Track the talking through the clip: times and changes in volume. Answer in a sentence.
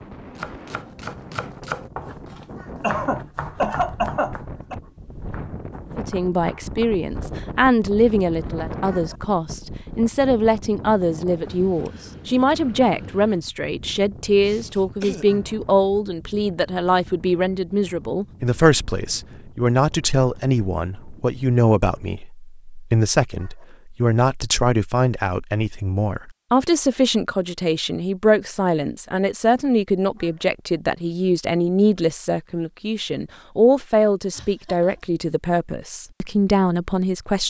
You can hear the talking from 6.0 to 37.4 s, at a steady volume.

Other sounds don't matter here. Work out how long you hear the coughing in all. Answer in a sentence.
You can hear the coughing for 4 seconds altogether.